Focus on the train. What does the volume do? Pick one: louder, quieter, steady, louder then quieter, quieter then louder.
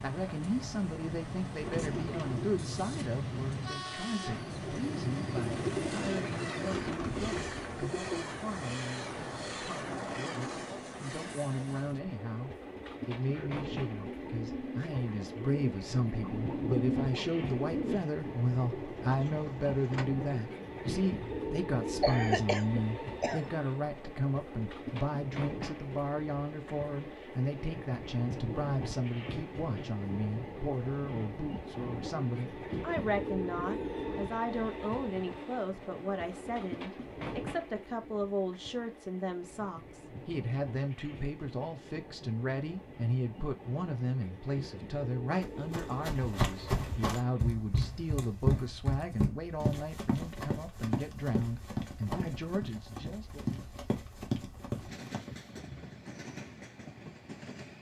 quieter.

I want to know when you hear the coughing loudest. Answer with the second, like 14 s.
22 s.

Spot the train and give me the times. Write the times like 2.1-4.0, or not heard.
0.0-57.7.